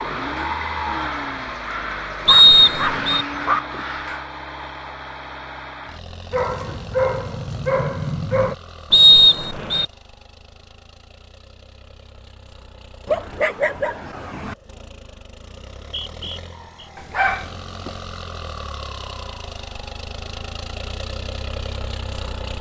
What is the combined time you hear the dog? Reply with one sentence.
You can hear the dog for 6 seconds altogether.